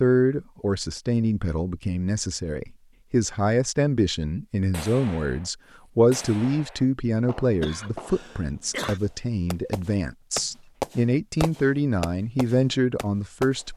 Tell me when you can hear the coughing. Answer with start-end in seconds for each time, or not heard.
7.6-9.0.